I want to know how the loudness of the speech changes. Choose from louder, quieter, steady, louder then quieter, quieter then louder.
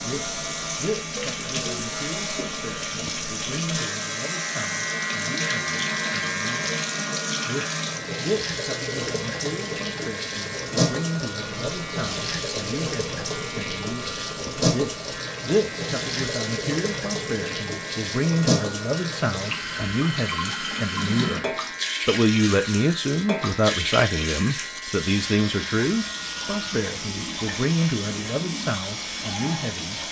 louder.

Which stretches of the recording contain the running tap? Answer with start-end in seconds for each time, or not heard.
0.0-30.0.